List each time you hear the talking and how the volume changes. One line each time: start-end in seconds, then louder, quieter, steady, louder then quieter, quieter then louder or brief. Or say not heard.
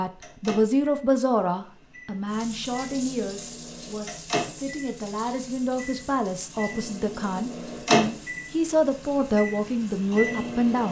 0.0-10.8 quieter then louder.